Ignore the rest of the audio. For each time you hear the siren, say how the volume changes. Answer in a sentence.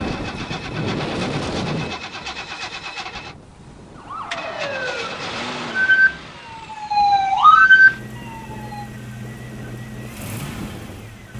The siren can be heard from 4.0 to 8.8 s, getting louder.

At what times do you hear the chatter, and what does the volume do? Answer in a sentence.
The chatter can't be heard in this clip.